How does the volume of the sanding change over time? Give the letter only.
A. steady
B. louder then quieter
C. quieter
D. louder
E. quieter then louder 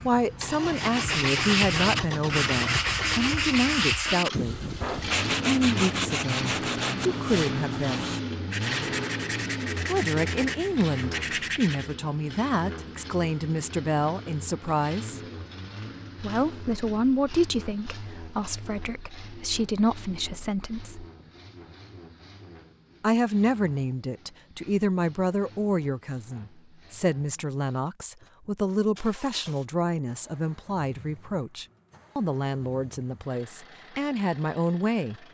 C.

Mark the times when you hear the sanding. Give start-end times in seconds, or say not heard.
0.7-11.9.